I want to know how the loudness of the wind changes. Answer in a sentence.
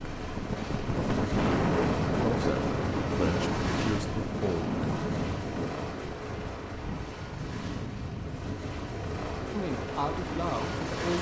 The loudness of the wind goes down.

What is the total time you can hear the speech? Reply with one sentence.
The speech can be heard for 4 seconds in total.